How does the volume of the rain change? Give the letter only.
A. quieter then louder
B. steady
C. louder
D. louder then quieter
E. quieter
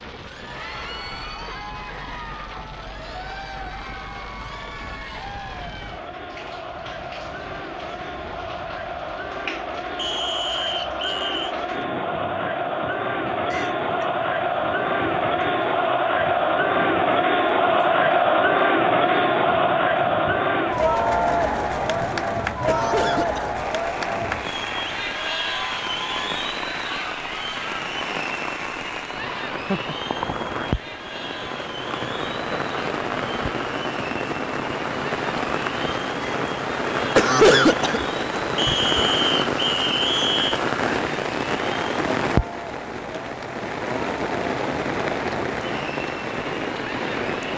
C.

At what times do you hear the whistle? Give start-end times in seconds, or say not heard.
9.9-11.6, 38.5-40.6.